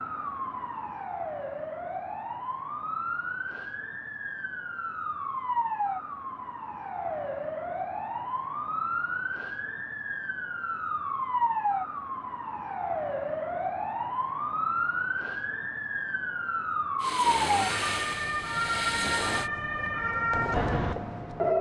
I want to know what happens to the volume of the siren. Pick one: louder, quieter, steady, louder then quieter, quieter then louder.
louder.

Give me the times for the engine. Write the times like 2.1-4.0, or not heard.
17.0-19.5.